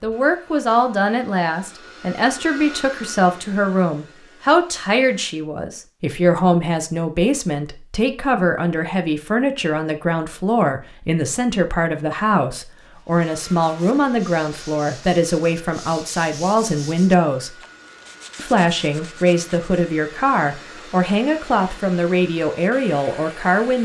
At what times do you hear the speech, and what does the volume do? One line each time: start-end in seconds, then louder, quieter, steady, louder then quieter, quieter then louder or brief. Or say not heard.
0.0-17.6 steady
18.4-23.8 steady.